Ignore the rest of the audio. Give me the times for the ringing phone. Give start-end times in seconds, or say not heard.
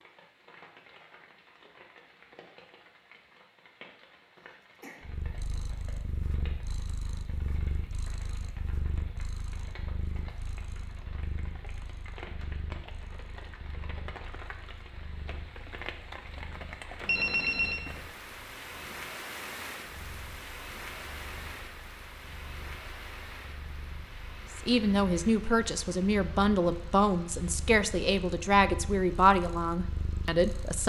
17.1-17.8.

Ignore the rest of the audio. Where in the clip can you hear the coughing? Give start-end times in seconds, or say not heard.
4.3-5.0.